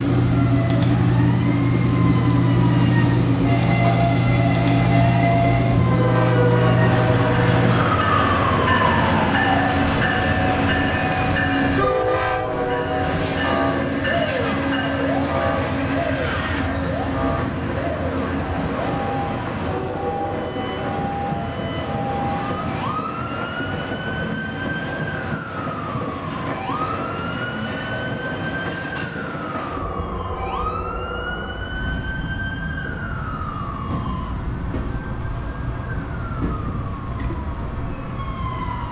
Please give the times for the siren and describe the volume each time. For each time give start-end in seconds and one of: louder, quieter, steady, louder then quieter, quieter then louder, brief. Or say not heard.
0.0-38.8 quieter.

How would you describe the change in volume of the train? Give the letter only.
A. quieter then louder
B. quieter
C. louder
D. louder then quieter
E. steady
B.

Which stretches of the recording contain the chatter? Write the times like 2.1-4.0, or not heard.
not heard.